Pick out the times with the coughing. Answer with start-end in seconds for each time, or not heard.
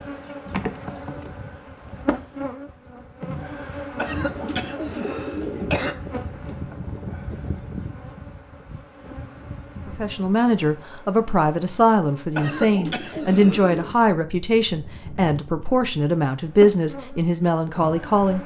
4.0-6.0, 12.3-13.9.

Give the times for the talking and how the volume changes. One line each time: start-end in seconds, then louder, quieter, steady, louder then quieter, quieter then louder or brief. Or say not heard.
9.8-18.4 steady.